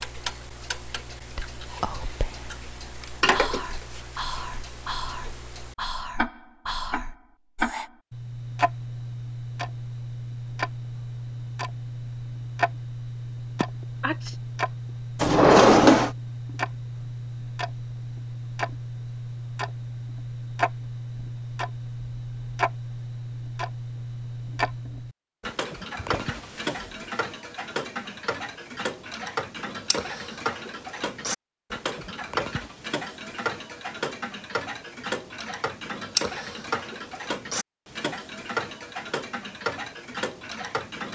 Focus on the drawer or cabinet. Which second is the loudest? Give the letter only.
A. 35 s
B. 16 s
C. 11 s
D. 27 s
B.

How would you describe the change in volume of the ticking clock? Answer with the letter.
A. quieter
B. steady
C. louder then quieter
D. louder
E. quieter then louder
B.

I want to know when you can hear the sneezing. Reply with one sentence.
The sneezing can be heard from 13.6 to 14.3 s.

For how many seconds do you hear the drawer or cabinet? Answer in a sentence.
The drawer or cabinet can be heard for 2 seconds in total.